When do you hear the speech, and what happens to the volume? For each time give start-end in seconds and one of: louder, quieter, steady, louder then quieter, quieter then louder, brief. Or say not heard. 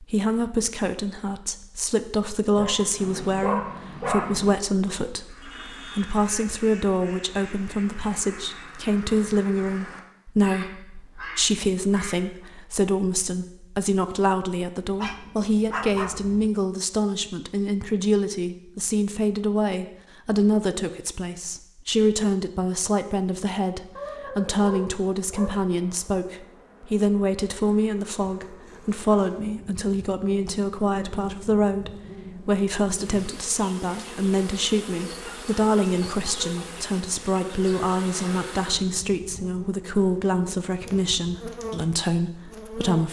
0.0-43.0 steady.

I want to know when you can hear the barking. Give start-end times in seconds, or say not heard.
2.5-4.5, 14.9-16.5, 23.9-25.6, 35.1-36.7.